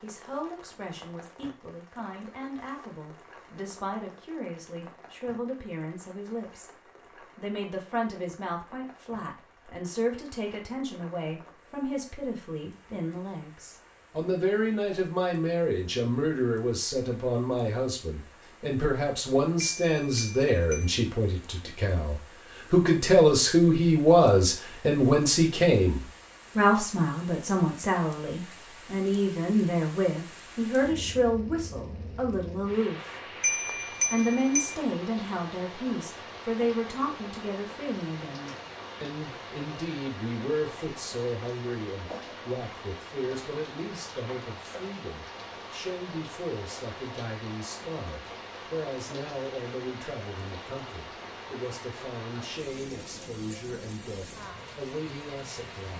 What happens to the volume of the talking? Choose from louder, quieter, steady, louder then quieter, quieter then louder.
louder then quieter.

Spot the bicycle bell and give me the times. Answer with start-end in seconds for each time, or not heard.
19.8-20.9, 33.4-34.8.